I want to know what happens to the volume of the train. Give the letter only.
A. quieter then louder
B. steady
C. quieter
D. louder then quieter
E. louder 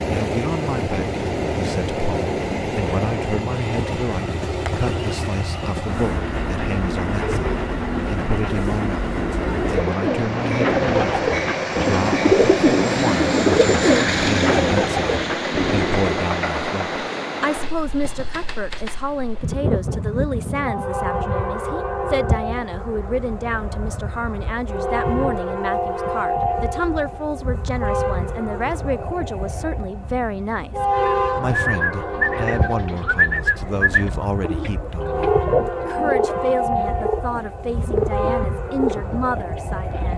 B.